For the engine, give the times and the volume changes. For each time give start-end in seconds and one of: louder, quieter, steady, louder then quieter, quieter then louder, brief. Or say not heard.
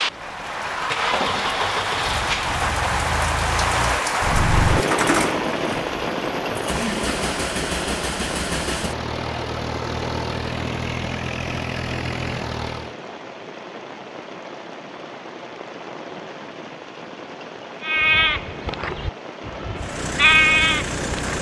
0.0-12.9 steady
19.8-21.3 brief.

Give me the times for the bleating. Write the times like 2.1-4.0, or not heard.
17.8-21.3.